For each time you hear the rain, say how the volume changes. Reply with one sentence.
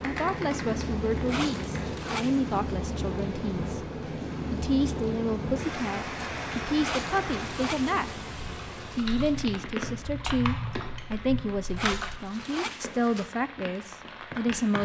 The rain can be heard from 0.0 to 14.8 s, getting quieter.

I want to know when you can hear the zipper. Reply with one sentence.
You can hear the zipper from 1.2 to 2.6 s, from 6.8 to 8.0 s and from 11.8 to 13.3 s.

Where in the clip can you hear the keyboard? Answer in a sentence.
The keyboard can be heard from 0.0 to 1.9 s and from 8.3 to 12.2 s.